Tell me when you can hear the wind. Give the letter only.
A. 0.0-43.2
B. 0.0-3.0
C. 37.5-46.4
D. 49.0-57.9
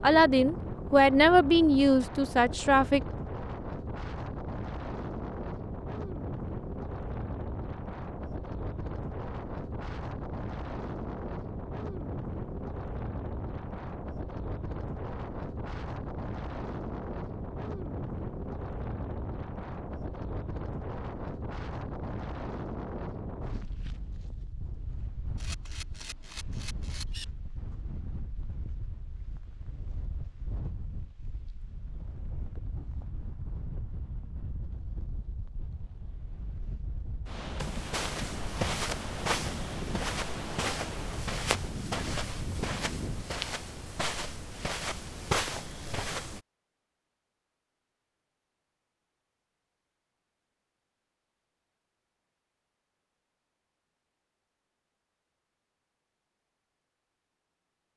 A.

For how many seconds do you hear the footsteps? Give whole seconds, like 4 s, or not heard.
9 s.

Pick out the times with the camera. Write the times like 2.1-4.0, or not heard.
25.4-27.2.